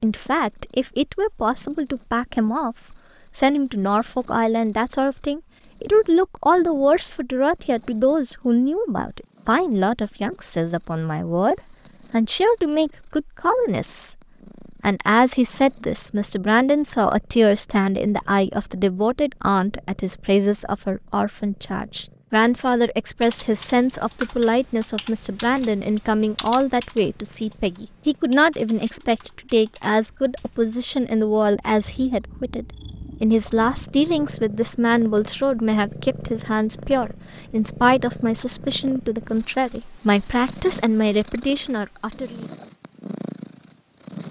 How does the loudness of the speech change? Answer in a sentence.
The loudness of the speech stays about the same.